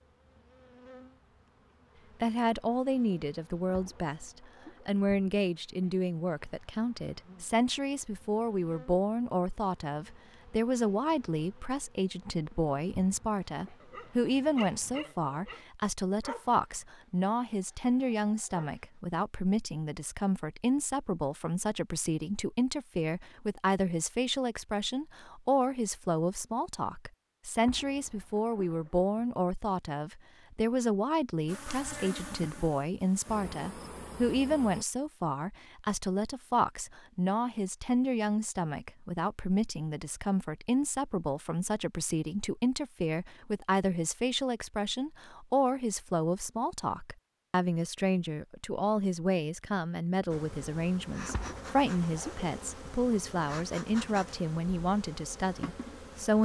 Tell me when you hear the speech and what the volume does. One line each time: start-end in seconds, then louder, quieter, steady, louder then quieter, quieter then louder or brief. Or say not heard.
2.2-56.4 steady.